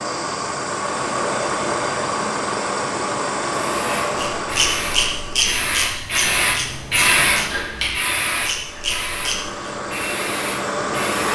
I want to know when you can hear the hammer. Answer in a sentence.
You can't hear the hammer here.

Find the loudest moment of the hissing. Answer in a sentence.
The loudest moment of the hissing is at 7 seconds.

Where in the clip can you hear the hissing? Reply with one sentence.
You can hear the hissing from 3.6 to 11.3 s.